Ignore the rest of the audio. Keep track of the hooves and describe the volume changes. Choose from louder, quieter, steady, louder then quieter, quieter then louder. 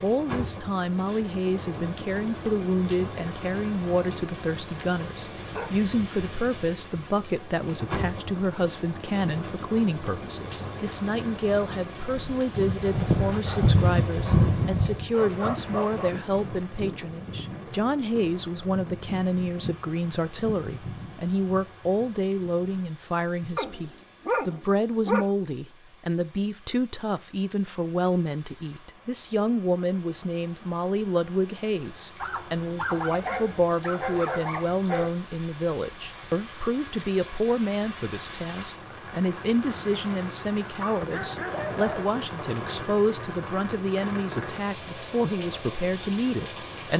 quieter.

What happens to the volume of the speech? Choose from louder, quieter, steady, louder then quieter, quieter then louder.
steady.